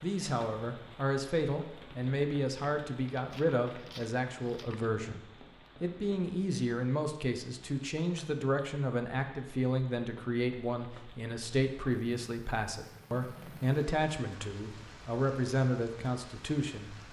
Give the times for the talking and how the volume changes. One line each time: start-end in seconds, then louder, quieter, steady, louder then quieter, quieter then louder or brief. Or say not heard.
0.0-17.0 steady.